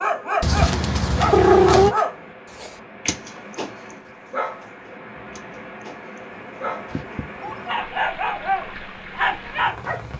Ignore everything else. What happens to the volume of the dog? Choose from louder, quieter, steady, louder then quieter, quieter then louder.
quieter then louder.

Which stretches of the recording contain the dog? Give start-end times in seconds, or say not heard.
0.0-10.1.